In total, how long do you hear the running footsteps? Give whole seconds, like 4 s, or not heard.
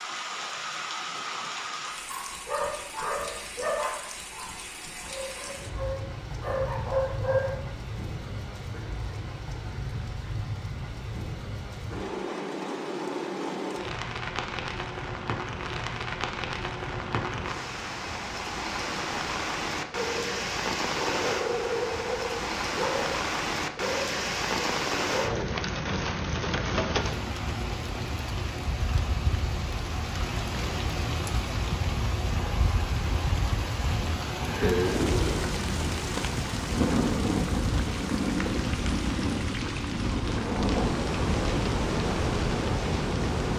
not heard.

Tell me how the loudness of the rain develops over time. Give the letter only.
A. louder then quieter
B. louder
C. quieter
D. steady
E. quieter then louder
B.